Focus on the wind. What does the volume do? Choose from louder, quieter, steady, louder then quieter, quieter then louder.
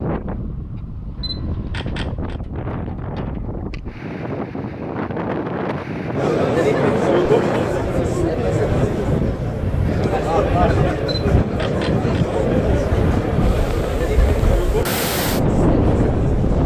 louder.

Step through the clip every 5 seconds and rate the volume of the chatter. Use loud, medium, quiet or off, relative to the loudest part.
off, loud, loud, medium.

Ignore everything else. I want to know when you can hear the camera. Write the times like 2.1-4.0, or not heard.
1.1-2.4, 11.0-12.3.